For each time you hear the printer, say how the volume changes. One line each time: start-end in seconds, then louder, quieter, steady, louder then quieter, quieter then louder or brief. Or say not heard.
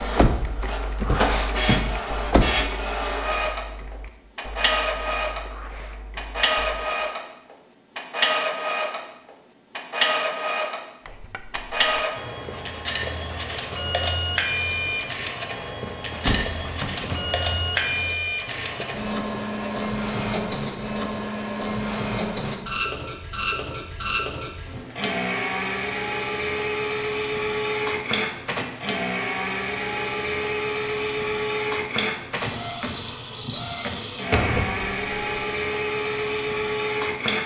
0.0-37.4 steady.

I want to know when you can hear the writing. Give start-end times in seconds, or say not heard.
11.1-22.6.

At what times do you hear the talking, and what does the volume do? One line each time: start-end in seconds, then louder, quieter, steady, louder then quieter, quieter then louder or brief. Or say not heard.
not heard.